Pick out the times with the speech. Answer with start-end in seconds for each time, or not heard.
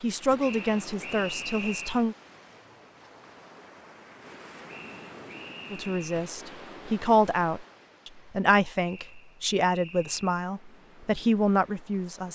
0.0-2.1, 5.7-12.3.